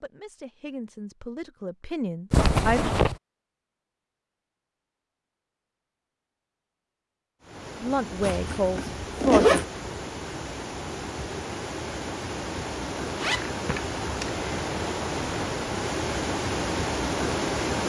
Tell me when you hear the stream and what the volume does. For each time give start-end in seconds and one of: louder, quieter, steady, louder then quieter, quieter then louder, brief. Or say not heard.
7.4-17.8 louder.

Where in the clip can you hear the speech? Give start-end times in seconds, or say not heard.
0.0-2.8, 7.8-9.6.